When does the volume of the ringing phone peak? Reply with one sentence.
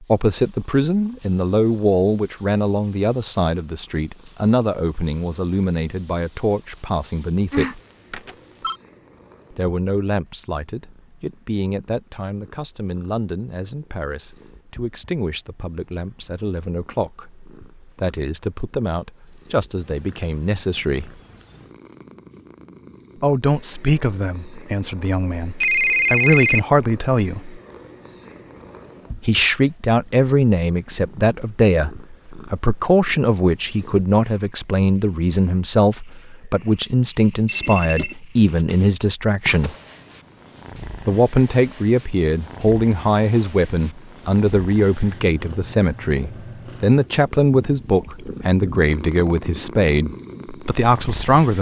The volume of the ringing phone peaks at 26 seconds.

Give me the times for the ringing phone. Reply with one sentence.
The ringing phone can be heard from 7.5 to 8.8 s, from 25.6 to 26.6 s and from 37.5 to 38.1 s.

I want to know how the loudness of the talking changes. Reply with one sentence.
The loudness of the talking goes down, then up.